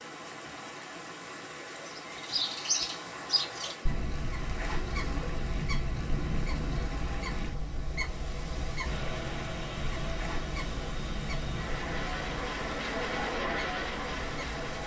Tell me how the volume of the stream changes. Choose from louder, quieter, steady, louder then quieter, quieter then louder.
steady.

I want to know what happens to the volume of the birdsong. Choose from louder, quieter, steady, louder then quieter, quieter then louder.
quieter.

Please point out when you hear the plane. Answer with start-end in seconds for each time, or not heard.
8.8-14.8.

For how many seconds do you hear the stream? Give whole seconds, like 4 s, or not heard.
15 s.